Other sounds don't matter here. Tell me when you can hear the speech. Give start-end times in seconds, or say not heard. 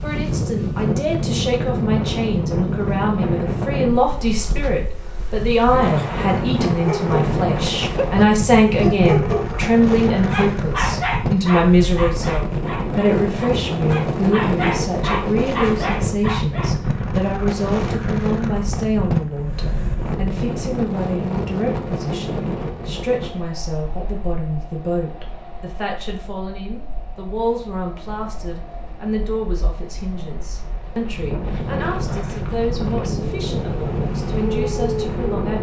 0.0-35.5.